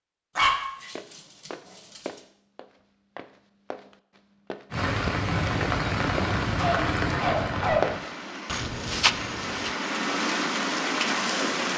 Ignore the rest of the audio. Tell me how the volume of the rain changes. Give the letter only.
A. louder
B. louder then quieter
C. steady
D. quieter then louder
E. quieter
D.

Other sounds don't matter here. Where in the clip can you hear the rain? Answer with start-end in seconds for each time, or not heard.
4.7-11.7.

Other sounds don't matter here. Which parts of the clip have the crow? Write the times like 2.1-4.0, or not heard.
not heard.